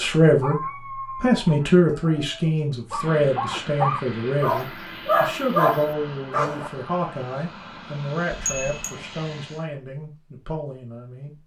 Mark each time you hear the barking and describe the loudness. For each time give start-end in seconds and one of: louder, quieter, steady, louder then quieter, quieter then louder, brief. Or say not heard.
0.1-6.7 quieter then louder.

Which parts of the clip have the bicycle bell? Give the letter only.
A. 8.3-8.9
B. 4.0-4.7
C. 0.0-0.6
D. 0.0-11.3
A.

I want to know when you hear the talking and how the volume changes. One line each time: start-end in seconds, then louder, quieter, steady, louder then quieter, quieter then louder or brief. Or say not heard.
0.0-11.3 quieter.